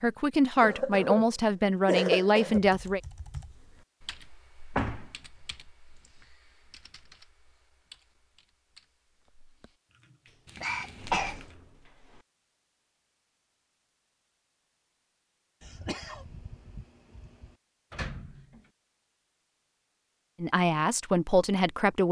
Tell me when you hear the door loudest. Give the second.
5 s.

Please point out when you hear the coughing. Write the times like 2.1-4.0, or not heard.
0.6-2.6, 10.4-11.4, 15.6-17.5.